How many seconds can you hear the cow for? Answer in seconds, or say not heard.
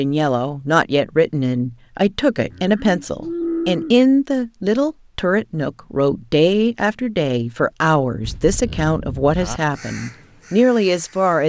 3 s.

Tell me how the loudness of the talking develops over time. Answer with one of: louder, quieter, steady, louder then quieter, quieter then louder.
steady.